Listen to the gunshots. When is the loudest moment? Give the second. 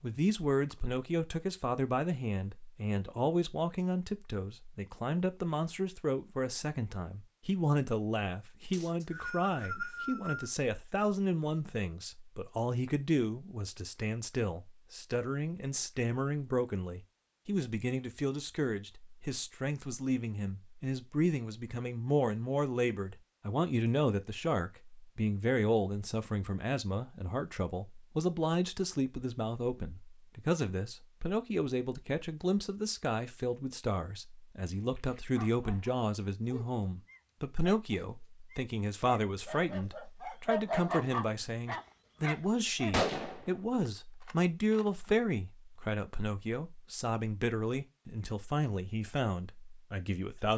43 s.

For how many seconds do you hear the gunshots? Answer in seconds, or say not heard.
2 s.